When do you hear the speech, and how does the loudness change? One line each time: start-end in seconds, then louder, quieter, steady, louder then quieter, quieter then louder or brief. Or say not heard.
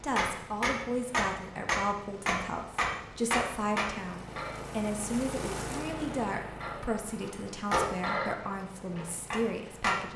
0.0-10.1 steady.